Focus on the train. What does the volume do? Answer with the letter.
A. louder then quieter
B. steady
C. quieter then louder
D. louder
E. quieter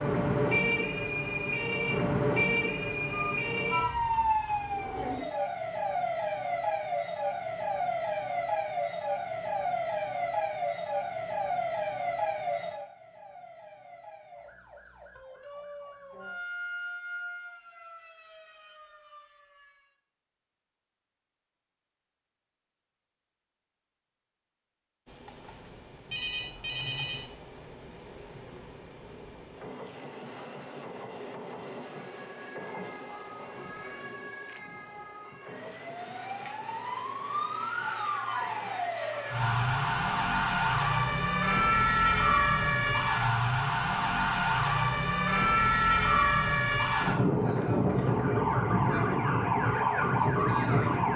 A.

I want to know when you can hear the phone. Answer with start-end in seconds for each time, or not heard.
3.1-3.9, 26.1-27.2.